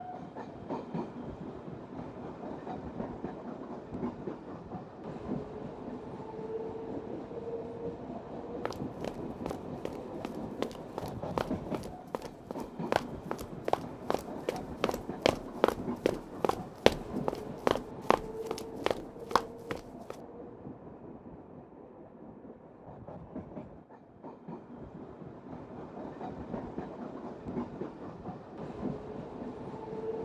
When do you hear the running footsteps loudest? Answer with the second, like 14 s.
17 s.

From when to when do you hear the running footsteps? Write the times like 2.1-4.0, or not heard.
8.7-20.1.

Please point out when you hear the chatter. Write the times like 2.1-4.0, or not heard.
not heard.